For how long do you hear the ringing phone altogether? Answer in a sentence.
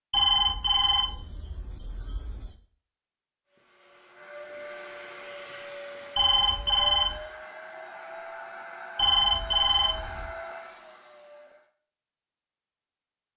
The ringing phone can be heard for 5 seconds in total.